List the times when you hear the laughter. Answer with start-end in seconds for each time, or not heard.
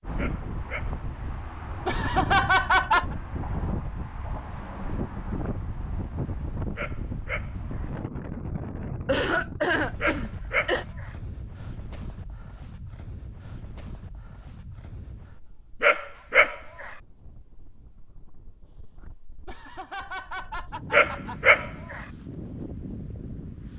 1.9-3.1, 9.1-10.8, 19.4-21.6.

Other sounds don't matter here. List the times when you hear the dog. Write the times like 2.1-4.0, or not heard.
0.1-1.3, 6.8-7.8, 10.0-11.1, 15.8-16.9, 20.9-22.1.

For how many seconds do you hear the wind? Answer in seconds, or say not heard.
24 s.